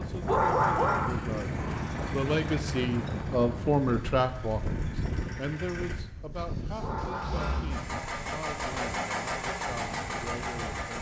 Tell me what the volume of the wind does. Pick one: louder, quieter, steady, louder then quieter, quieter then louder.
quieter.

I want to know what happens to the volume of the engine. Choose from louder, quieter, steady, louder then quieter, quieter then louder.
louder.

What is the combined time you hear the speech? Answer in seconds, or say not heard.
11 s.